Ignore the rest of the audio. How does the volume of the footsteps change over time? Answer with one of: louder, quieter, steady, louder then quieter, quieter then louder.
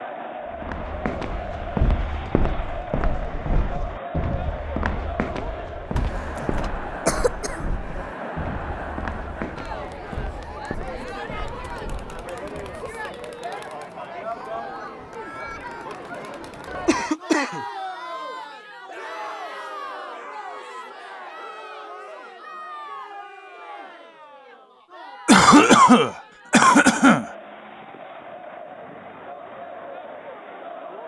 quieter.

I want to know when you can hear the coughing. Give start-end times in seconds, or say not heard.
6.0-7.7, 16.9-17.6, 25.2-27.2.